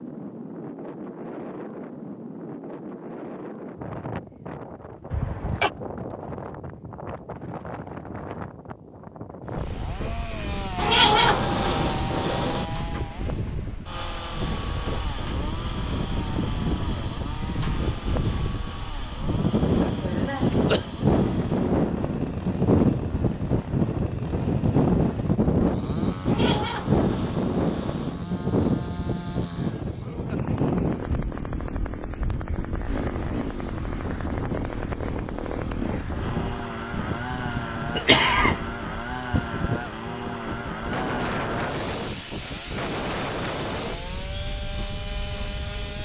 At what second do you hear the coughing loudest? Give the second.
38 s.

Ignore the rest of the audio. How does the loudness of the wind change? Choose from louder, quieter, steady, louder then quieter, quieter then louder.
louder then quieter.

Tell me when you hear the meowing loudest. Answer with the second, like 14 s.
11 s.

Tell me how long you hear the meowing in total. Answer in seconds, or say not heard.
4 s.